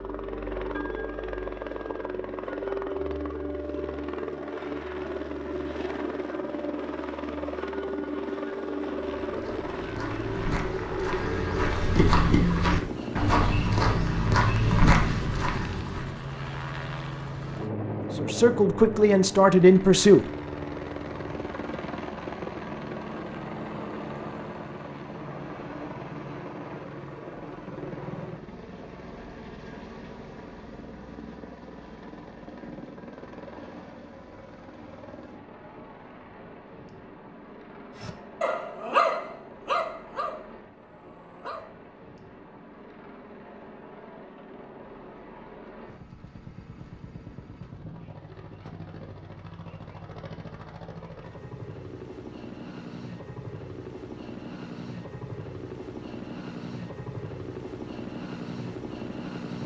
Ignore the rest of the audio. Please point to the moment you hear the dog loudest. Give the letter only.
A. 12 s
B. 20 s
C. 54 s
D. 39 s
D.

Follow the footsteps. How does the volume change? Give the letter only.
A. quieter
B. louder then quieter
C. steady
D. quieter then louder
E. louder
E.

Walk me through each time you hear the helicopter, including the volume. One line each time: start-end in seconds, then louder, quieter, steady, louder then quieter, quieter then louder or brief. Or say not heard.
0.0-59.6 quieter then louder.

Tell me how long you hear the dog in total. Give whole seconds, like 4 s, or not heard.
4 s.